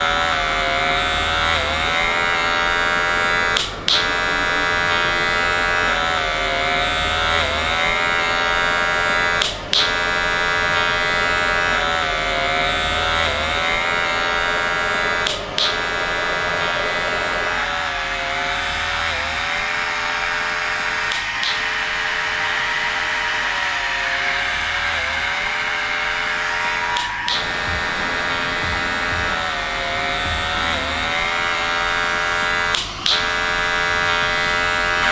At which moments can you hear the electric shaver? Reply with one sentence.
The electric shaver can be heard from 0.0 to 35.0 s.